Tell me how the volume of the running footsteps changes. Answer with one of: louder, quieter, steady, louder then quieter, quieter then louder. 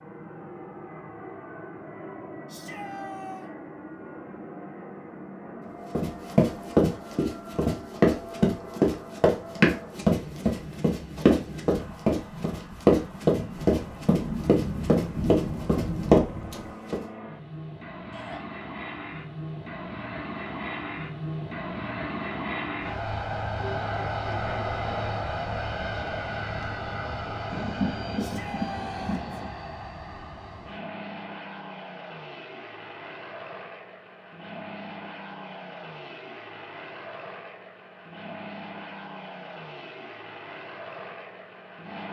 steady.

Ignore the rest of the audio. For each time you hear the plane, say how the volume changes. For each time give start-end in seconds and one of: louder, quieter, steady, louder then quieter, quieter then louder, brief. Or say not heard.
0.0-42.0 louder then quieter.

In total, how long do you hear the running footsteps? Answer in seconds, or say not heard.
11 s.